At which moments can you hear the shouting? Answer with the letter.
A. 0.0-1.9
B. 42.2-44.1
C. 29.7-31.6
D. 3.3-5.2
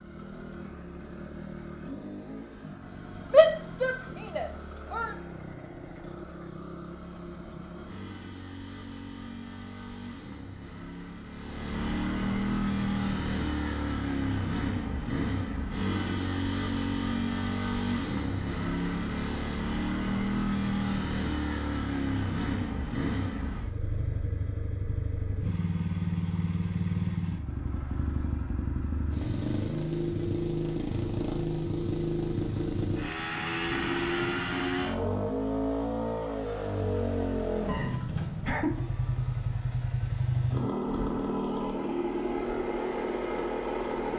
D.